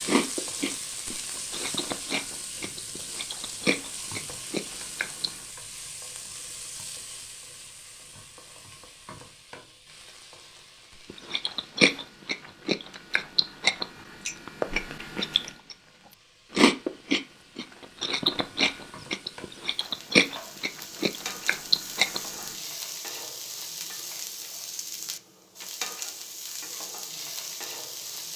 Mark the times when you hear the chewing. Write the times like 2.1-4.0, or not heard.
0.1-5.3, 11.1-15.8, 16.5-22.5.